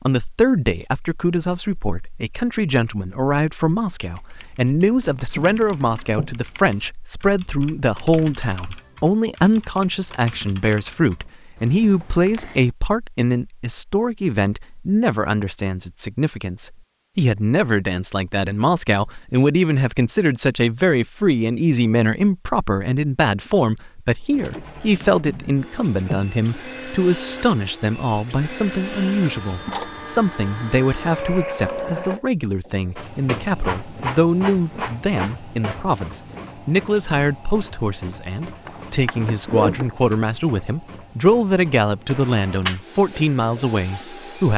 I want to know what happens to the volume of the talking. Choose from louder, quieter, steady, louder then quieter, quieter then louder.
steady.